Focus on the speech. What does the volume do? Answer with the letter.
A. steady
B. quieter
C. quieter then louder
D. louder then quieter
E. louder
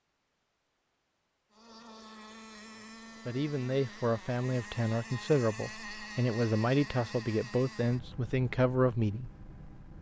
A.